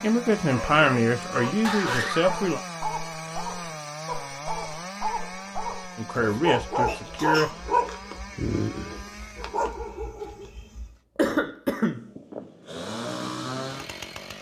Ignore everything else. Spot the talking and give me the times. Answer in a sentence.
You can hear the talking from 0.0 to 2.6 s and from 6.0 to 7.5 s.